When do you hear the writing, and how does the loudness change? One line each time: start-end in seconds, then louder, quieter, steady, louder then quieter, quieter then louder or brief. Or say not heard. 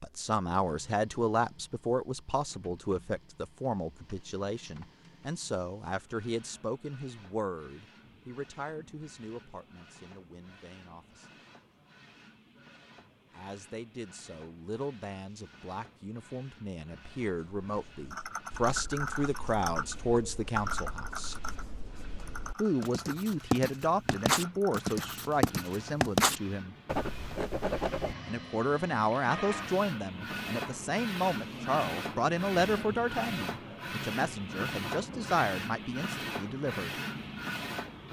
17.2-28.1 louder.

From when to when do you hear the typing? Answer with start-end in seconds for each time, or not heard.
18.1-25.1.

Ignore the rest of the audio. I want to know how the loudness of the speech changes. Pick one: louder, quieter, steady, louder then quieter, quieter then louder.
quieter then louder.